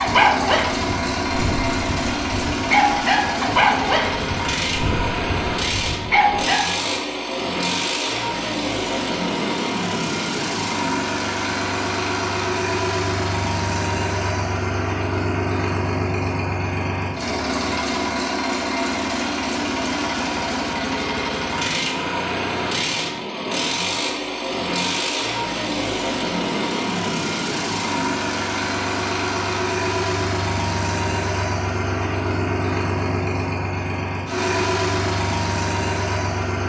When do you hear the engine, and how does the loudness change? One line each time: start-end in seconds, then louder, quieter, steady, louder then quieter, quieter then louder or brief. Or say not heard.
0.0-36.6 steady.